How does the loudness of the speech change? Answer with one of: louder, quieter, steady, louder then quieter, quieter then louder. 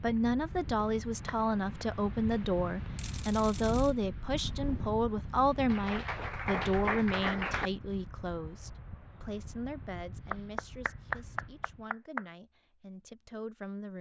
quieter.